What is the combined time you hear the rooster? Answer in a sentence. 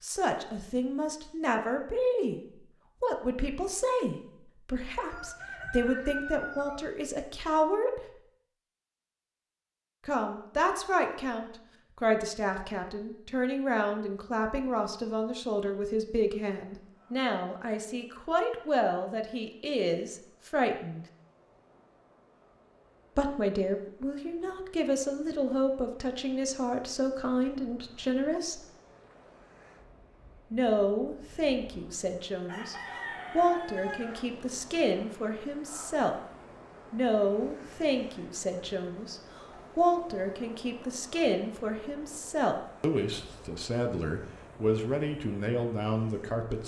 You can hear the rooster for 4 seconds altogether.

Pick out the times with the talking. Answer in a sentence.
You can hear the talking from 0.0 to 2.4 s, from 3.0 to 8.2 s, from 10.1 to 21.1 s, from 23.1 to 28.6 s, from 30.5 to 36.2 s and from 36.9 to 46.6 s.